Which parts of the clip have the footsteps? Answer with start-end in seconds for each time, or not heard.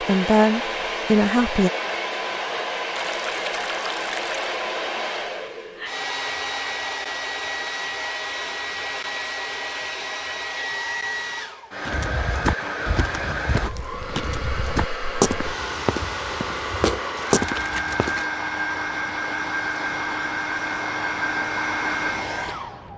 11.8-18.2.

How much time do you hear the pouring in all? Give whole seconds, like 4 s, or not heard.
3 s.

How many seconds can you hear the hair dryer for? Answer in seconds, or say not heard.
23 s.